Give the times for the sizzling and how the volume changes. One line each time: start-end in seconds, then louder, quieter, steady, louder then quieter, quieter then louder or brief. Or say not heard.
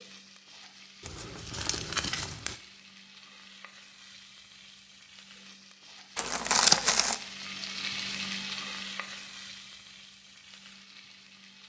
0.0-11.6 louder then quieter.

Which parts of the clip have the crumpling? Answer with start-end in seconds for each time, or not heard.
1.0-2.6, 6.2-7.2.